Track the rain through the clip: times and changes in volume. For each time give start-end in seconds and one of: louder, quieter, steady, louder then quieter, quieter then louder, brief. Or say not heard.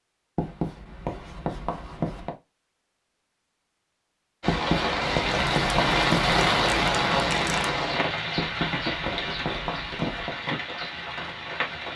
4.4-11.9 quieter.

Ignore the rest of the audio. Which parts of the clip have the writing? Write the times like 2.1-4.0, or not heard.
0.3-2.4, 4.5-6.3, 8.3-10.3.